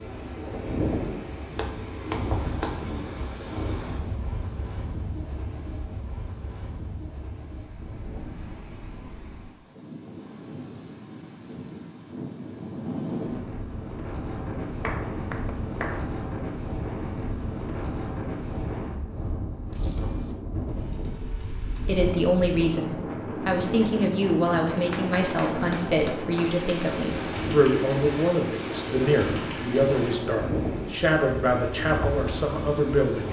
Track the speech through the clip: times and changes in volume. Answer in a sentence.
You can hear the speech from 21.9 to 33.2 s, at a steady volume.